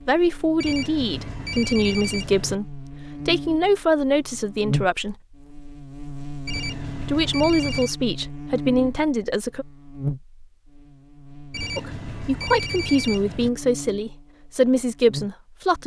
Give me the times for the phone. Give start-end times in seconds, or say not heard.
0.6-2.5, 6.5-8.0, 11.5-13.5.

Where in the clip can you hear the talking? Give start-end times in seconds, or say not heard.
0.1-5.2, 7.0-9.7, 11.8-15.8.